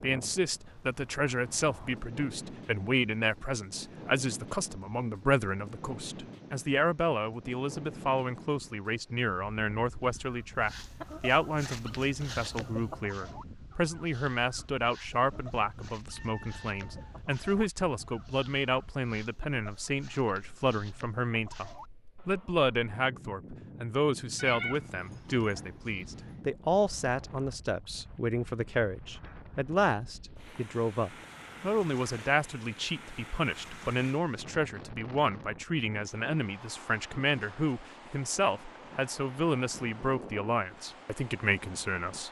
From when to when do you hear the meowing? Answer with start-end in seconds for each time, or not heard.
16.1-17.0, 24.4-26.4.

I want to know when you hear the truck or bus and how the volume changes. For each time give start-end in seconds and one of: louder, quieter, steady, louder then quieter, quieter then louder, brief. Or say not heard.
not heard.